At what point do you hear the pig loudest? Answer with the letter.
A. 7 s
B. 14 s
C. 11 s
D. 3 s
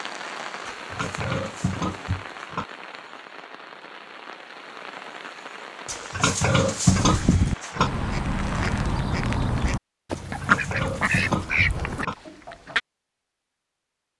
A.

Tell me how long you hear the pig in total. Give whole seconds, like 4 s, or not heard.
6 s.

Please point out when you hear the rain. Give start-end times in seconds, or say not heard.
0.0-9.1.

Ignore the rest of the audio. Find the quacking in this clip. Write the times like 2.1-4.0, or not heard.
6.9-12.8.